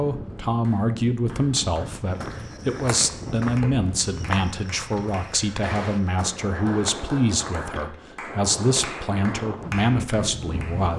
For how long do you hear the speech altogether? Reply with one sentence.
You can hear the speech for 11 seconds altogether.